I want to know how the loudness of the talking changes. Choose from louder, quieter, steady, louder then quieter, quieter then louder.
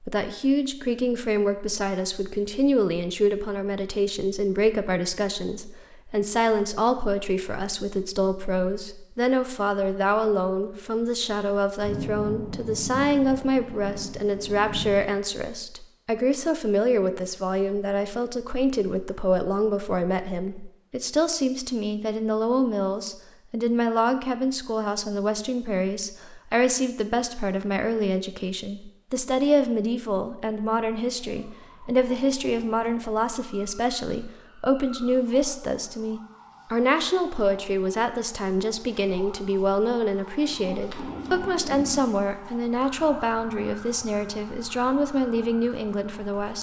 steady.